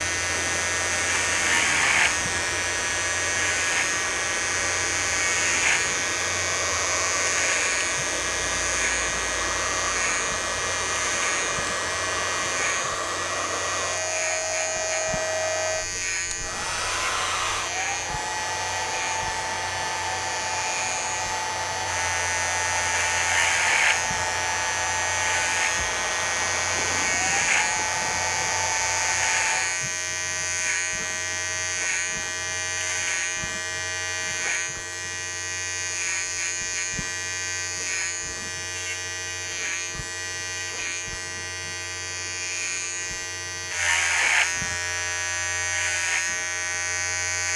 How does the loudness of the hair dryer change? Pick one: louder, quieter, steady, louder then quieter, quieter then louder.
steady.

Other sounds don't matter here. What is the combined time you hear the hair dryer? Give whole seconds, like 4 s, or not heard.
30 s.